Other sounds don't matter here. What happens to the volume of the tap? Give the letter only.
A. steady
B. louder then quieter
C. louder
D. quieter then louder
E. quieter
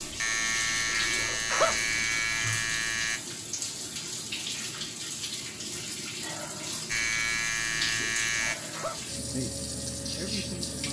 A.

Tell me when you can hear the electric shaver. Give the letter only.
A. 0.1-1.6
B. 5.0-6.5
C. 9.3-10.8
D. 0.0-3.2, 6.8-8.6
D.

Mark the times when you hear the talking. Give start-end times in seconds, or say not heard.
9.3-10.8.